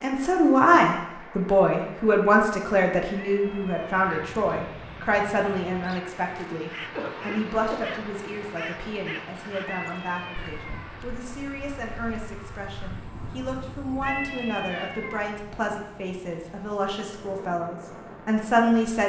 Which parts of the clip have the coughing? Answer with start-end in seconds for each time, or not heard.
7.0-8.1.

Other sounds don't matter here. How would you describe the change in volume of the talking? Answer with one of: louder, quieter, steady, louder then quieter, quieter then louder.
quieter then louder.